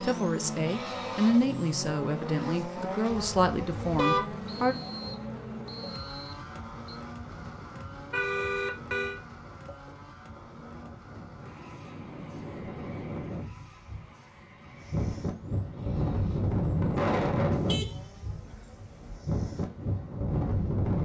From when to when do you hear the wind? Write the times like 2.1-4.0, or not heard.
4.8-21.0.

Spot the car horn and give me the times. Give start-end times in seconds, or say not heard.
3.1-4.5, 8.1-9.2, 17.5-19.2.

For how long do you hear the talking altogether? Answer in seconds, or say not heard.
5 s.